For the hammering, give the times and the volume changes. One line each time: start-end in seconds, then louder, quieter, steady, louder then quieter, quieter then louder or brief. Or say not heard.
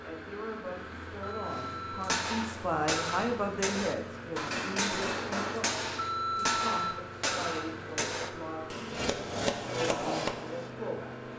1.5-10.7 steady.